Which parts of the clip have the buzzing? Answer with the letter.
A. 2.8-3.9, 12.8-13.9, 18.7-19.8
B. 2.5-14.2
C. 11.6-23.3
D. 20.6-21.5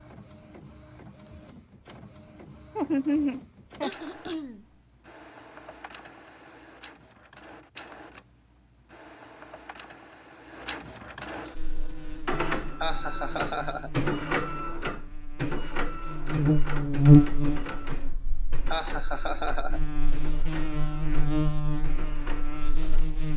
C.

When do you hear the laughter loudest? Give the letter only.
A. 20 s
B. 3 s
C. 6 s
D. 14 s
B.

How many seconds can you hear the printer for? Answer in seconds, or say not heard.
23 s.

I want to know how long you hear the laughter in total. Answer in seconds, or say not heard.
3 s.